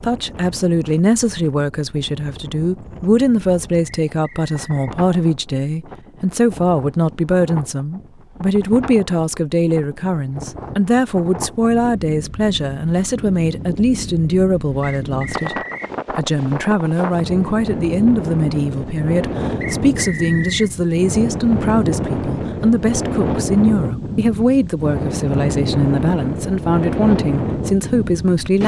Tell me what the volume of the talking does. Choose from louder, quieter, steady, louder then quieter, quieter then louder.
steady.